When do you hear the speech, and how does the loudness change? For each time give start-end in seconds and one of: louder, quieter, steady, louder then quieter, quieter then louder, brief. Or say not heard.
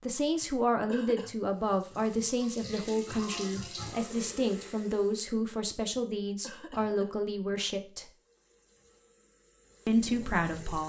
0.0-8.1 steady
9.8-10.8 brief.